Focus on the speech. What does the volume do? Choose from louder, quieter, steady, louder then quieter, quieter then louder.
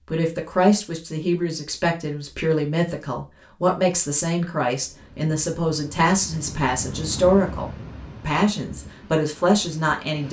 steady.